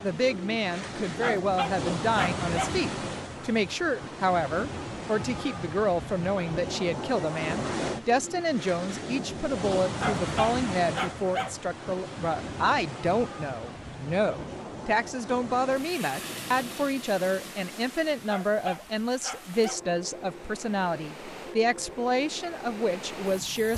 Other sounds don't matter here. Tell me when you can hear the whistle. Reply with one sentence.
You can't hear the whistle here.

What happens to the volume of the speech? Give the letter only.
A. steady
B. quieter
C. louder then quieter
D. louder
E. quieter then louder
A.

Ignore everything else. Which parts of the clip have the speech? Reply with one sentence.
You can hear the speech from 0.0 to 23.7 s.